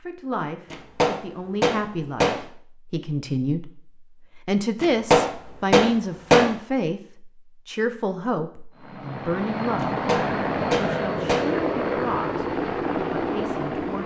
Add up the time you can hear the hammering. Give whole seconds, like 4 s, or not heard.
5 s.